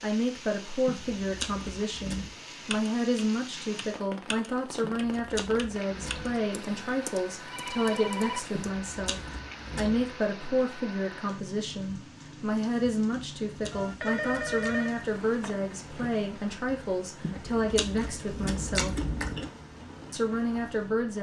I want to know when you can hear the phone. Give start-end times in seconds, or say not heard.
7.5-8.5, 13.7-15.6.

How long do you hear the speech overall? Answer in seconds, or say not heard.
20 s.